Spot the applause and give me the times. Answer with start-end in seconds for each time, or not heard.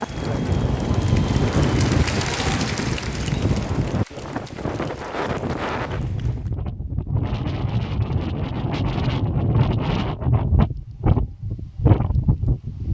0.0-6.5.